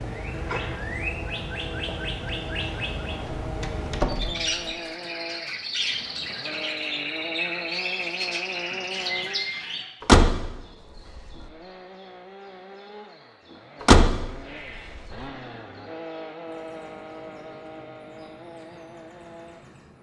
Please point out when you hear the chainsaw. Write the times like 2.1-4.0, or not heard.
0.0-9.5, 11.4-19.9.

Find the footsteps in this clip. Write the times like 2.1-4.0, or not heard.
not heard.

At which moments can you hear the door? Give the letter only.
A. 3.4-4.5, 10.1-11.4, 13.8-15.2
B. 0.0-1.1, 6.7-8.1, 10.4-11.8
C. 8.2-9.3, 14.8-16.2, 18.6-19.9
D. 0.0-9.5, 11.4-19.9
A.